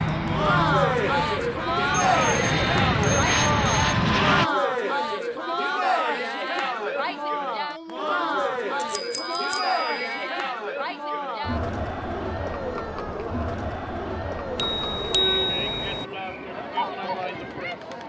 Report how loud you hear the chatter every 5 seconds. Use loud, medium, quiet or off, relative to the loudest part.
loud, loud, medium, medium.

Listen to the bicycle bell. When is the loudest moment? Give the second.
15 s.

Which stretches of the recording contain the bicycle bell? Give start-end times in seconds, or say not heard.
2.1-4.0, 8.4-10.3, 14.6-16.1.